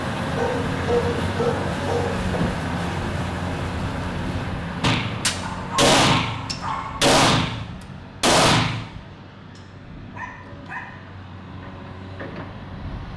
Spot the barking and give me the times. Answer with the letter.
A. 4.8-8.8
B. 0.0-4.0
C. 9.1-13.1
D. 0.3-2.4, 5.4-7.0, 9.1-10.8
D.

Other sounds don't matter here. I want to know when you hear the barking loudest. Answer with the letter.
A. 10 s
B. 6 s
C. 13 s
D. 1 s
D.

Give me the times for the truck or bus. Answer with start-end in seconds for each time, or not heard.
0.0-13.1.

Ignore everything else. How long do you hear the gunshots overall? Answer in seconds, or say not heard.
4 s.